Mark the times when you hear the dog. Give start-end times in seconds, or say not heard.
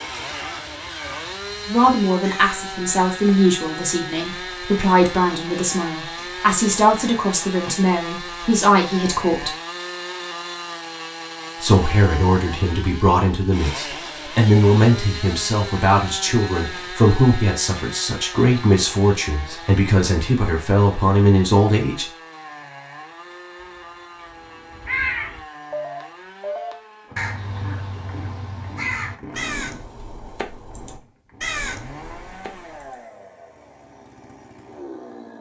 not heard.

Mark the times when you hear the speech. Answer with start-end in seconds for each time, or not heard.
1.6-9.5, 11.6-22.1.